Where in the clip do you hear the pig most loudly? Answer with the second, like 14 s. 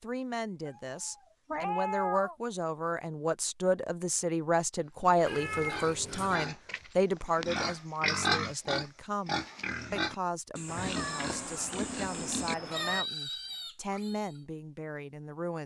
8 s.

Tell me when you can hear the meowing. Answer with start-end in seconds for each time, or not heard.
0.7-2.4, 5.2-6.3, 10.7-13.1.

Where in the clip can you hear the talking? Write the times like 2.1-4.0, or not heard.
0.0-15.6.